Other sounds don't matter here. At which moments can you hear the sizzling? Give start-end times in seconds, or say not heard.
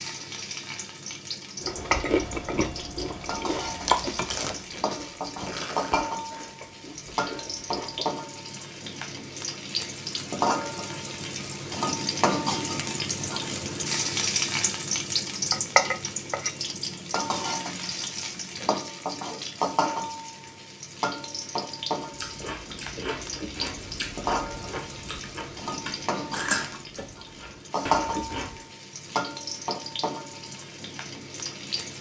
0.0-31.9.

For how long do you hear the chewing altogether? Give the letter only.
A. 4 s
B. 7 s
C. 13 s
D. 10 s
C.